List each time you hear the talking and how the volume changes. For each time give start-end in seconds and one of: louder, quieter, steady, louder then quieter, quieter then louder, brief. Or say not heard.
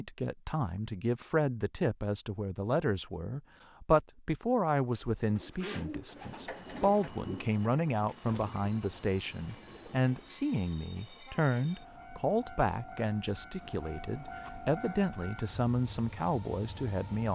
0.0-17.3 steady.